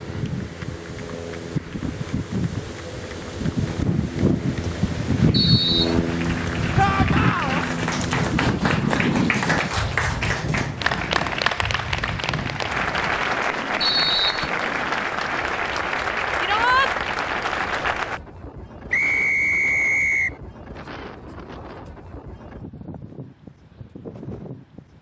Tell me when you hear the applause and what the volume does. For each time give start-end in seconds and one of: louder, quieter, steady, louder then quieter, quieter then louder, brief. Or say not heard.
0.0-18.2 louder.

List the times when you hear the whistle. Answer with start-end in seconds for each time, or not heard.
5.3-6.0, 13.8-14.5, 18.9-20.4.